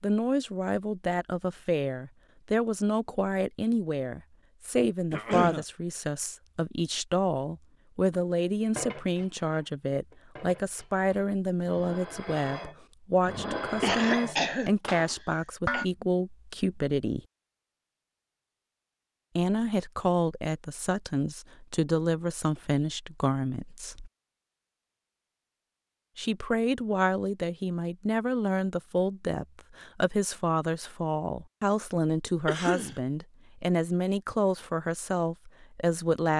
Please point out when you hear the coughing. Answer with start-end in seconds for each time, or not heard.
5.1-5.7, 13.8-15.8, 32.5-33.0.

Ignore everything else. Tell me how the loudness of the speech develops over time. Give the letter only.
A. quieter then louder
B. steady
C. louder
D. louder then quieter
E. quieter
B.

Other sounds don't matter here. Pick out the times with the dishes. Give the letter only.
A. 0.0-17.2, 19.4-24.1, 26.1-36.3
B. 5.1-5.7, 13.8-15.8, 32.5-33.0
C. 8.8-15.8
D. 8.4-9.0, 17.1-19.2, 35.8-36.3
C.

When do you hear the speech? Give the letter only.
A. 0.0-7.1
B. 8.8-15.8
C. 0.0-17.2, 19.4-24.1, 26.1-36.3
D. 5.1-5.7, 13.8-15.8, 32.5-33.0
C.